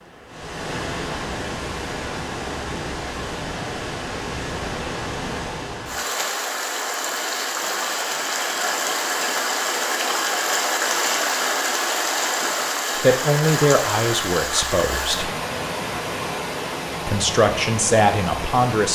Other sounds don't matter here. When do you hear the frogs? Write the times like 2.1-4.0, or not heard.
not heard.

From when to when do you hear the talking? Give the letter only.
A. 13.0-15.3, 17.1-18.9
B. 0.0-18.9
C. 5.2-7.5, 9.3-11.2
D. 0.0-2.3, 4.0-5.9
A.